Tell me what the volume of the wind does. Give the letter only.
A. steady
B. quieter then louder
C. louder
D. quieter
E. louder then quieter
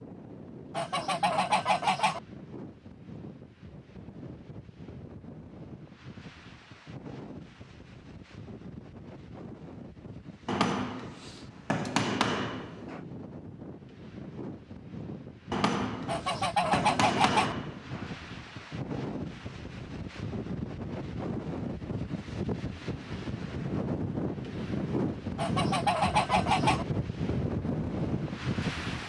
C.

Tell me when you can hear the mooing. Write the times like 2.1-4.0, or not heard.
not heard.